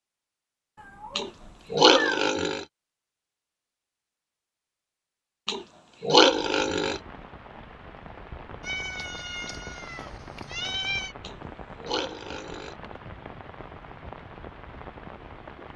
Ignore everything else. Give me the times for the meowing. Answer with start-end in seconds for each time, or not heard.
0.8-2.3, 8.6-11.2.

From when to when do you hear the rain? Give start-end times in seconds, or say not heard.
6.2-15.7.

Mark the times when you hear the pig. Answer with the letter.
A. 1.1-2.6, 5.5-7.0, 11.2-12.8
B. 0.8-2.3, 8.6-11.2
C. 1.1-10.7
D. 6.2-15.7
A.